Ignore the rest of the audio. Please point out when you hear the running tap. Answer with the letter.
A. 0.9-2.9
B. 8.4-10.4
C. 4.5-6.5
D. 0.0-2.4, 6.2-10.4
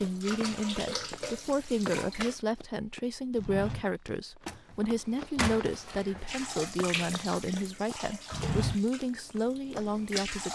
D.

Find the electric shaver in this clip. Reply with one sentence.
The electric shaver can't be heard in this clip.